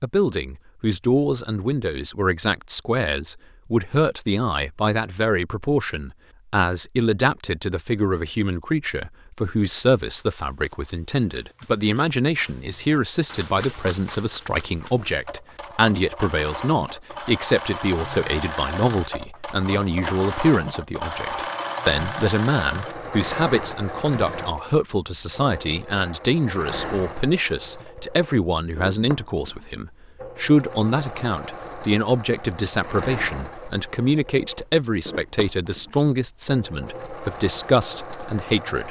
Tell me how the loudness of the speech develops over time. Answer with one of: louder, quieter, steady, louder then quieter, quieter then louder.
steady.